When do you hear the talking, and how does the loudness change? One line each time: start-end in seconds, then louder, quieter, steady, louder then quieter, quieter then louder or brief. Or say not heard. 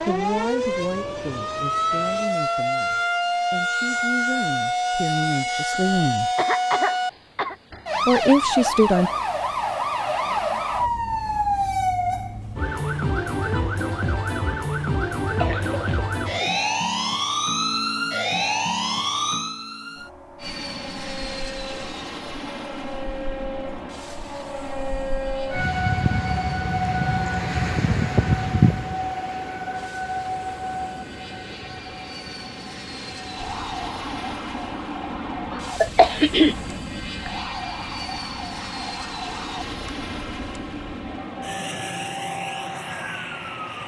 0.1-6.3 quieter then louder
8.1-9.1 brief.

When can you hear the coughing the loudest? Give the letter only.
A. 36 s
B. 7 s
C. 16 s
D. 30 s
A.